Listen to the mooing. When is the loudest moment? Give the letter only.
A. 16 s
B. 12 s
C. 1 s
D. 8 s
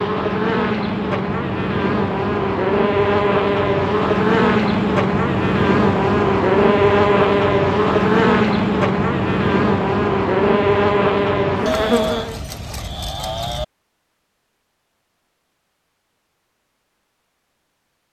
B.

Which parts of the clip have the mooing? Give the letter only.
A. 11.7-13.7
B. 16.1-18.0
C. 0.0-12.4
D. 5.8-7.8
A.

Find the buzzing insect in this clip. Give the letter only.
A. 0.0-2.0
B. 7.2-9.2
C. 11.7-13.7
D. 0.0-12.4
D.